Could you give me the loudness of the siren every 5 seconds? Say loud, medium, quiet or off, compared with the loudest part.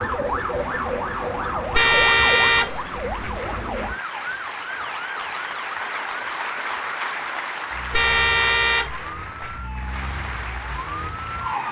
loud, medium, loud.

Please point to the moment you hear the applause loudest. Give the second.
7 s.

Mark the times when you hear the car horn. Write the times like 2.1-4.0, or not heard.
1.7-3.4, 7.9-9.6.